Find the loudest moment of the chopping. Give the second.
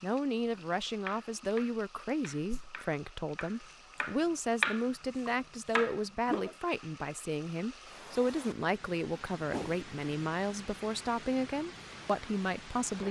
5 s.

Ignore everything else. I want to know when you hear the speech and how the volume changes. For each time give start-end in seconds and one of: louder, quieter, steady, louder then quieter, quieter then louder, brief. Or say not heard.
0.0-13.0 steady.